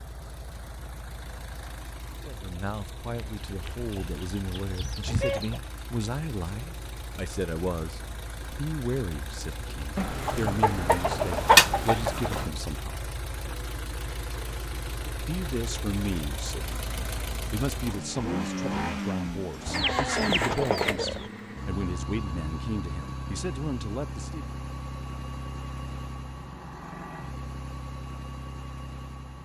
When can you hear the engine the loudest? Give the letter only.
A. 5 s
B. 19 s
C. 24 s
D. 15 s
B.